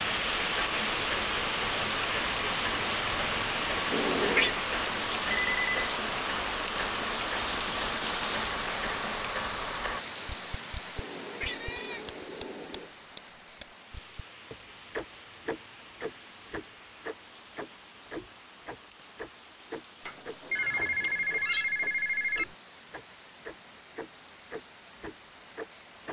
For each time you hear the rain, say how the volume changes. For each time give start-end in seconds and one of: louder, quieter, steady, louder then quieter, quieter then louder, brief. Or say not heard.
0.0-26.0 quieter.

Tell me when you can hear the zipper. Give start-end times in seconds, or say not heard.
not heard.